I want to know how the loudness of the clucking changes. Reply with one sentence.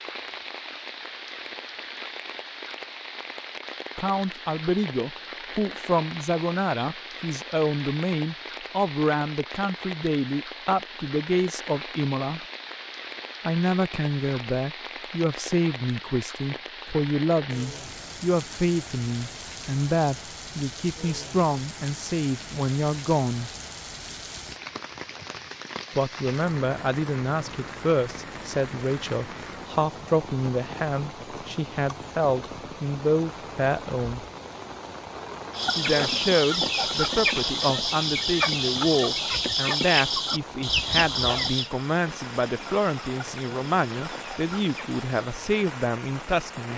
The volume of the clucking goes down.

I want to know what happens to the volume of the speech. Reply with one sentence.
The loudness of the speech stays about the same.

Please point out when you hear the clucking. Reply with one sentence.
You can hear the clucking from 35.5 to 45.4 s.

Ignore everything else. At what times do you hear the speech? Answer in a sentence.
You can hear the speech from 4.0 to 12.4 s, from 13.4 to 23.5 s, from 25.9 to 34.2 s and from 35.8 to 46.7 s.